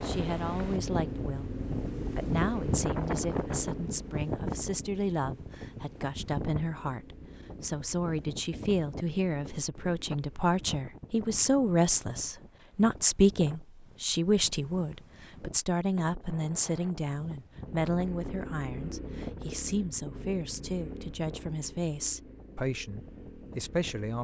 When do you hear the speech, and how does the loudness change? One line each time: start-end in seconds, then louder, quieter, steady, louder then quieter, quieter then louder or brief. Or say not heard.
0.0-1.5 brief
2.1-24.2 louder then quieter.